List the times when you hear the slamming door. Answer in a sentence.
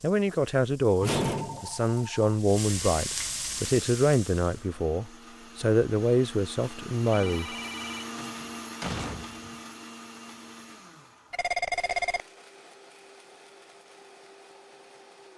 You can hear the slamming door from 1.0 to 1.8 s and from 8.2 to 9.6 s.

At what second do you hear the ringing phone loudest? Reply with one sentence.
The volume of the ringing phone peaks at 12 seconds.